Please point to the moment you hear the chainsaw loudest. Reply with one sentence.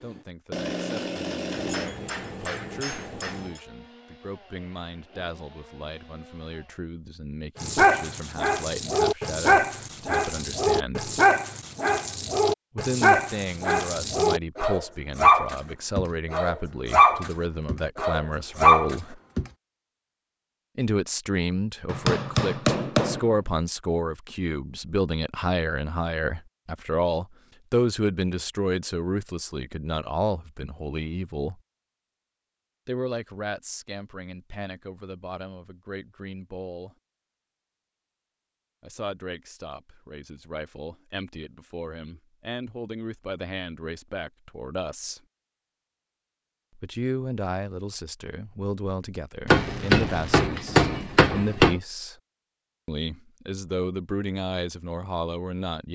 The loudest moment of the chainsaw is at 1 second.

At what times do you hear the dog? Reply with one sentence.
You can hear the dog from 7.5 to 19.4 s.